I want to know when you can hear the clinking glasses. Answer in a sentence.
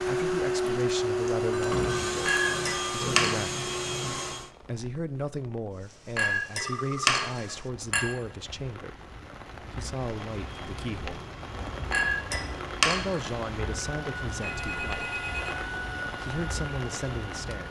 The clinking glasses can be heard from 2.2 to 3.4 s, from 6.2 to 8.1 s and from 11.9 to 13.2 s.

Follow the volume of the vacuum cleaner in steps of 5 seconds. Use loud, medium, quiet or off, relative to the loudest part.
loud, off, quiet, medium.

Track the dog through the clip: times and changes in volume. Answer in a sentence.
You can't hear the dog here.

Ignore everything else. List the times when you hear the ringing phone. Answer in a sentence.
The ringing phone can be heard from 1.5 to 3.0 s, from 6.6 to 7.2 s and from 14.4 to 15.7 s.